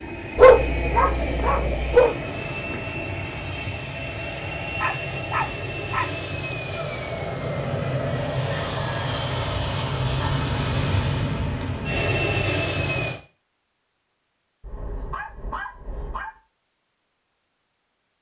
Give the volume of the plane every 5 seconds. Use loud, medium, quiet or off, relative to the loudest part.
medium, loud, loud, off.